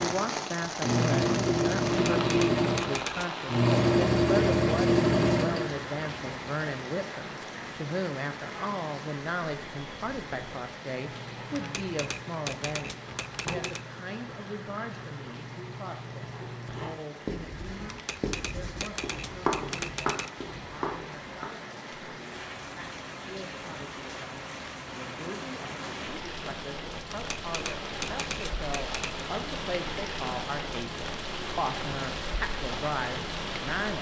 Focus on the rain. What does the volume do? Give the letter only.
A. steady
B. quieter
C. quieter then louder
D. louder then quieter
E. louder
C.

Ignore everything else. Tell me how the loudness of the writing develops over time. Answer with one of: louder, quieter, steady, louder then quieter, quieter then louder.
louder.